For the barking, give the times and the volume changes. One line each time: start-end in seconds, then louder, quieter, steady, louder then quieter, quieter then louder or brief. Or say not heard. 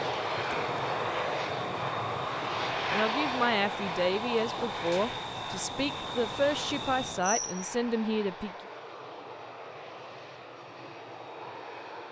not heard.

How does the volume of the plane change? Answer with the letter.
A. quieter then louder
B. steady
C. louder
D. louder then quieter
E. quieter
E.